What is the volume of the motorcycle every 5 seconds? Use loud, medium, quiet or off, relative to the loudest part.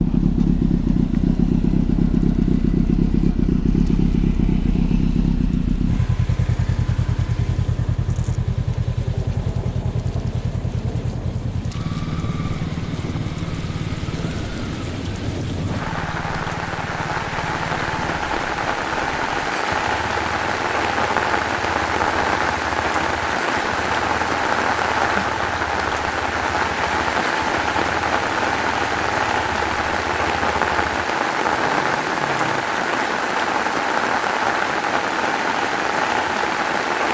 loud, medium, medium, quiet, quiet, quiet, quiet, off.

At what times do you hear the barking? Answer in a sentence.
The barking can't be heard in this clip.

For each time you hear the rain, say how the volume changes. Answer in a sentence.
The rain can be heard from 0.0 to 37.0 s, getting louder.